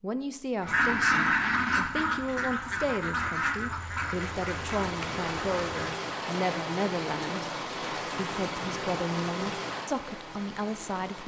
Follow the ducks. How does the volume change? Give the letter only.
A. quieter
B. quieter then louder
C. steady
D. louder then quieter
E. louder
A.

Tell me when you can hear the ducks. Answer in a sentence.
The ducks can be heard from 0.6 to 6.0 s.